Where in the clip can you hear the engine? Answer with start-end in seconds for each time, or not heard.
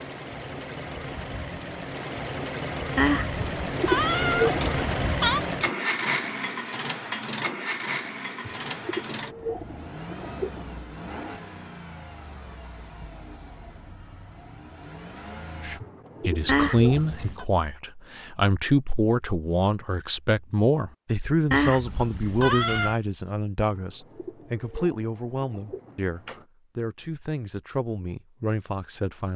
0.0-15.8.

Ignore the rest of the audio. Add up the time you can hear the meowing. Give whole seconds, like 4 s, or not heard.
5 s.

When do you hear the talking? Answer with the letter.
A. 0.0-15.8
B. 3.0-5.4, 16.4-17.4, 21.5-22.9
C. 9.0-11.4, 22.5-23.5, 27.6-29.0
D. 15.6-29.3
D.